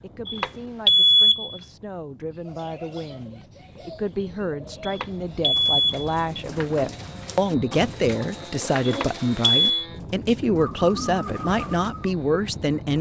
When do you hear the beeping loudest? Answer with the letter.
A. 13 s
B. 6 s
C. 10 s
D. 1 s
D.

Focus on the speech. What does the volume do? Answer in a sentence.
The loudness of the speech goes up.